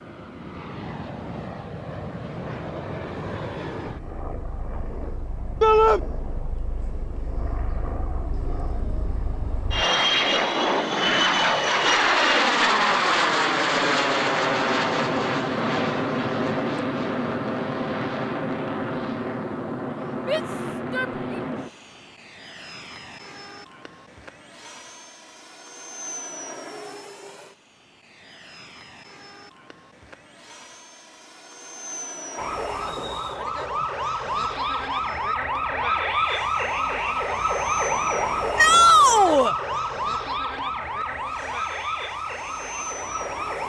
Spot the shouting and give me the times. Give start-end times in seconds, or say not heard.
5.6-6.0, 20.2-21.4, 38.5-39.5.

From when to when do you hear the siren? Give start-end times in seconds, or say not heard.
32.4-43.6.